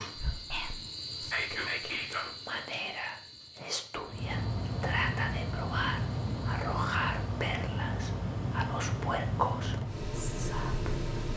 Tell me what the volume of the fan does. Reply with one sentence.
The volume of the fan stays about the same.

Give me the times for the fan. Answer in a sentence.
You can hear the fan from 4.0 to 11.3 s.